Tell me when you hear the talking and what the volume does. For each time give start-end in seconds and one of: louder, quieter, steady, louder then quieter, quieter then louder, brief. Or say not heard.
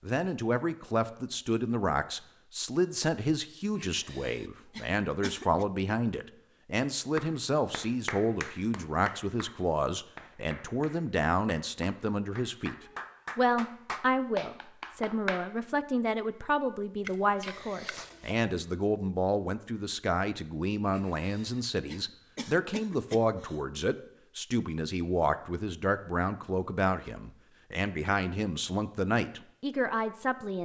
0.0-12.8 steady
13.3-30.6 steady.